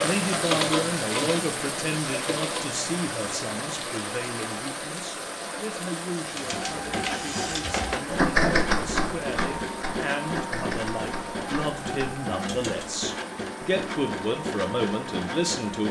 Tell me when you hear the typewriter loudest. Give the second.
8 s.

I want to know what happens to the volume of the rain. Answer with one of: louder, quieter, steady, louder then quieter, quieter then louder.
quieter.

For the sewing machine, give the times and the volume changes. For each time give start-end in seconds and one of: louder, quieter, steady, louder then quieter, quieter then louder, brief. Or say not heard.
0.0-4.0 quieter
6.3-15.8 steady.